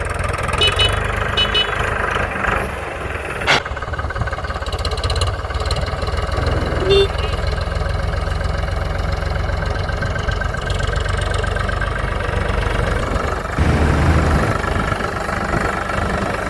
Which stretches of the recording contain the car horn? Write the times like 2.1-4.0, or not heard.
0.5-1.8, 6.3-7.1, 13.6-14.6.